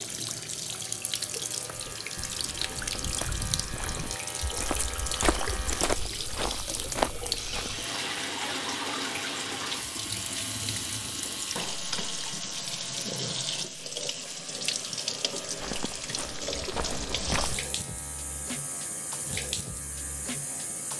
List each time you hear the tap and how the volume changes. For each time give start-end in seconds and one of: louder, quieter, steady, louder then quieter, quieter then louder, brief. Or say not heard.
0.0-20.9 steady.